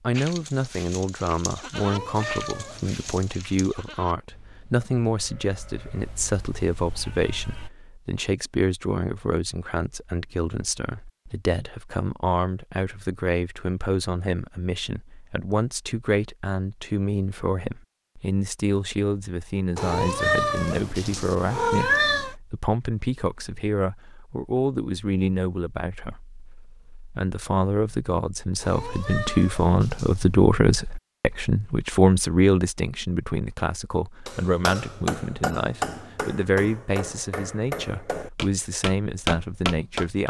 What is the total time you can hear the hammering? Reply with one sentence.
The hammering can be heard for 6 seconds in total.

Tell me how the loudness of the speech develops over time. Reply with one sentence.
The volume of the speech stays about the same.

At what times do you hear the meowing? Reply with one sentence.
The meowing can be heard from 1.8 to 3.3 s, from 19.8 to 22.4 s and from 28.6 to 30.4 s.